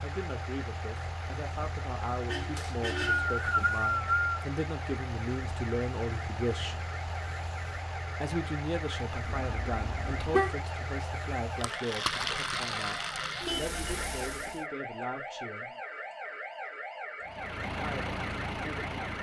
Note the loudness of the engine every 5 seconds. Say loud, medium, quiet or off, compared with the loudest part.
medium, medium, loud, loud.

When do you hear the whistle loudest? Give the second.
4 s.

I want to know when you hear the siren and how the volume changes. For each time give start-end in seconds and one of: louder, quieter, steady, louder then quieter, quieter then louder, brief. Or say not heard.
0.0-19.1 louder.